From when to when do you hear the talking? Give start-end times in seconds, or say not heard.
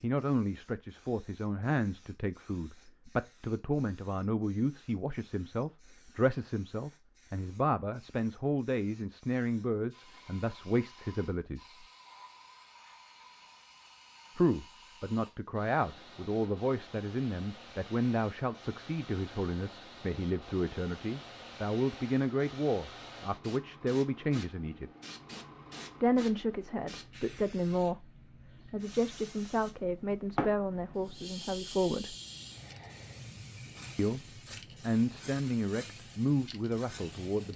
0.0-11.8, 14.3-24.9, 26.0-32.1, 34.0-37.5.